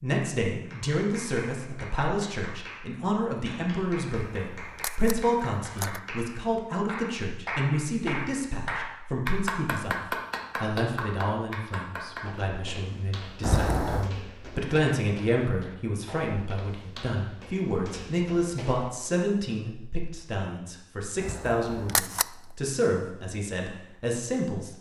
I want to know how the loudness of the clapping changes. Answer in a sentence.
The loudness of the clapping goes up.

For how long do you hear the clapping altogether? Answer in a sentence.
You can hear the clapping for 12 seconds altogether.